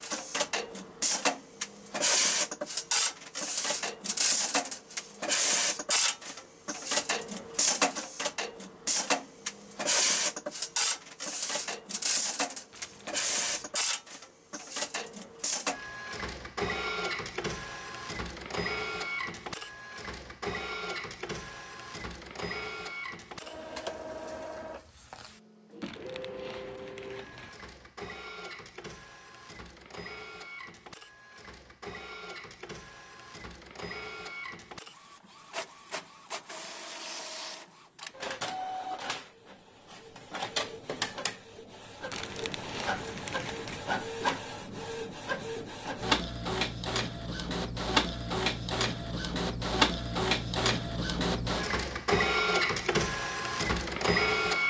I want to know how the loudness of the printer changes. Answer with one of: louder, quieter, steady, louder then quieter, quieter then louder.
quieter then louder.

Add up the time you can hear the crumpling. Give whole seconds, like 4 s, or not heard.
5 s.